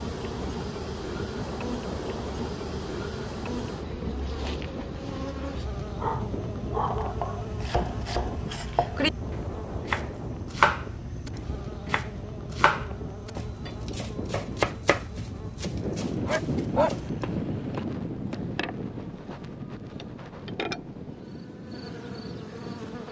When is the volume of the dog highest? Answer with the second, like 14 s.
17 s.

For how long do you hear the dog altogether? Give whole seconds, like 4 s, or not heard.
3 s.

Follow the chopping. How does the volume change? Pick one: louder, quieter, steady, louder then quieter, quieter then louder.
louder then quieter.